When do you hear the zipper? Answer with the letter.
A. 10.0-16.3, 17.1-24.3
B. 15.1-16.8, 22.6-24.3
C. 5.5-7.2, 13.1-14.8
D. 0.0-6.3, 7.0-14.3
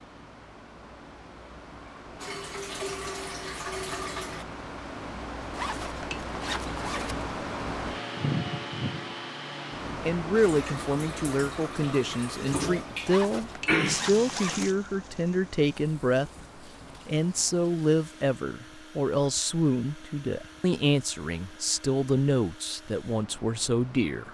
C.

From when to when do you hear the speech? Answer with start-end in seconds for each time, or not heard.
10.0-16.3, 17.1-24.3.